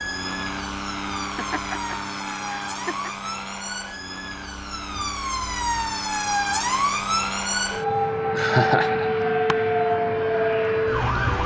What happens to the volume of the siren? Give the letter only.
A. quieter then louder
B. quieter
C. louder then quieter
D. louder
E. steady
D.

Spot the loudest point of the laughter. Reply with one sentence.
The loudest moment of the laughter is at 9 seconds.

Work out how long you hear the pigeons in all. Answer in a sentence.
You can't hear the pigeons here.